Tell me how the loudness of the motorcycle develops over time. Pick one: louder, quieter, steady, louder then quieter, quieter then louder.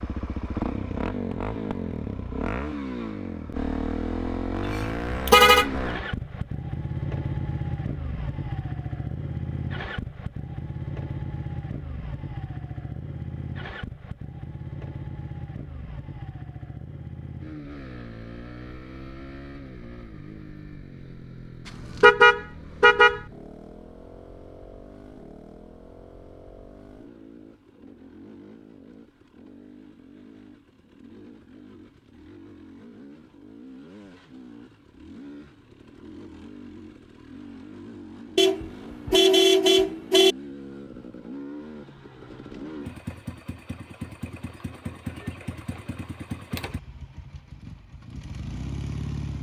quieter then louder.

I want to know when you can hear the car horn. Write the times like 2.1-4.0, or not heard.
4.8-5.7, 22.0-23.2, 38.4-40.4.